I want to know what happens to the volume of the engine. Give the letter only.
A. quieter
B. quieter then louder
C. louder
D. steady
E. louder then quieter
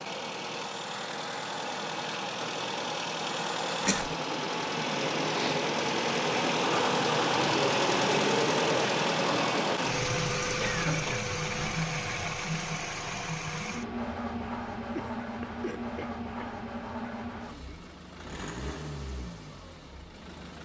E.